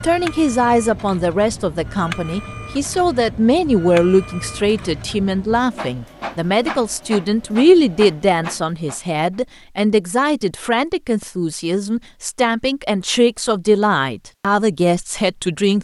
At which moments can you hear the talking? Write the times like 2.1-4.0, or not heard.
0.0-15.7.